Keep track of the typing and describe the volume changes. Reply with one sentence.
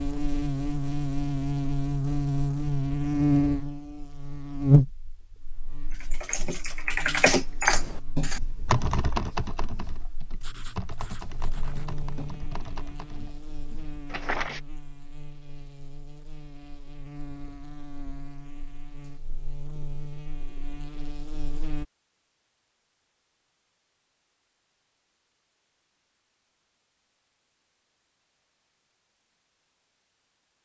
The loudness of the typing goes down.